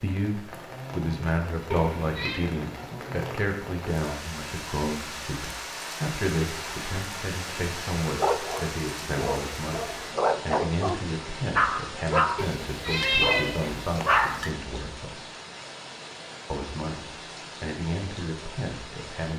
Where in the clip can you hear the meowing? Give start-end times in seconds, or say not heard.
1.7-2.5, 12.3-14.5.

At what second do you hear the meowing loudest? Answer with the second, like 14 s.
13 s.